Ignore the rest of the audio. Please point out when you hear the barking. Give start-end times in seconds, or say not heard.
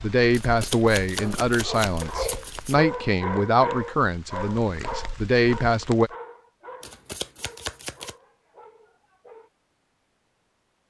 1.2-9.5.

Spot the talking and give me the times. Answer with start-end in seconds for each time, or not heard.
0.0-6.1.